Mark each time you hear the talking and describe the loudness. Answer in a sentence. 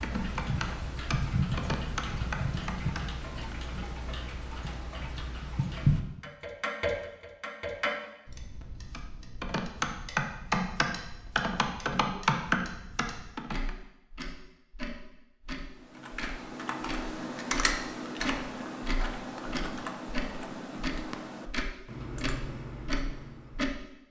The talking can't be heard in this clip.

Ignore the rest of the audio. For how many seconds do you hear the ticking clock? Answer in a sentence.
You can hear the ticking clock for 24 seconds altogether.